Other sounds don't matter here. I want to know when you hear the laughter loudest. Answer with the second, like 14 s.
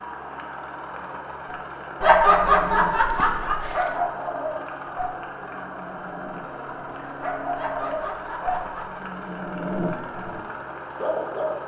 2 s.